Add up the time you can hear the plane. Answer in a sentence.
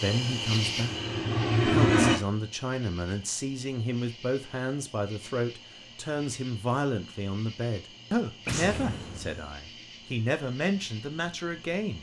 The plane can be heard for 2 seconds in total.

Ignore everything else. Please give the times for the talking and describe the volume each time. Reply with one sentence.
The talking can be heard briefly from 0.0 to 1.0 s; and from 1.6 to 11.9 s, at a steady volume.